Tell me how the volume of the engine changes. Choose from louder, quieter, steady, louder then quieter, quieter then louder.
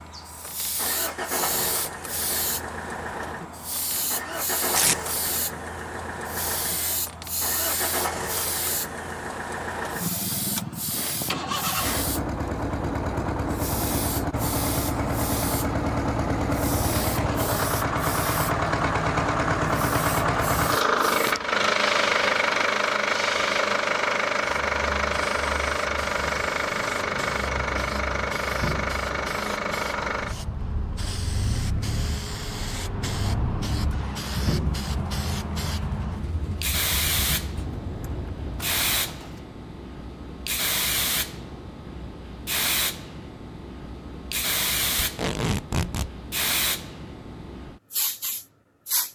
louder then quieter.